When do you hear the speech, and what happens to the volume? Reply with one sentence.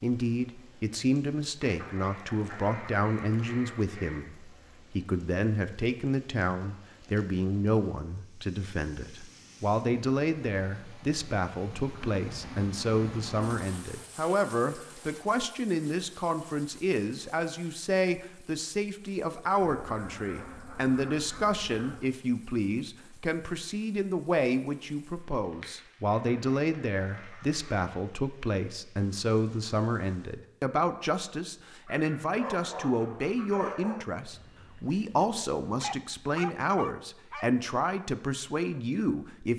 The speech can be heard from 0.0 to 39.5 s, at a steady volume.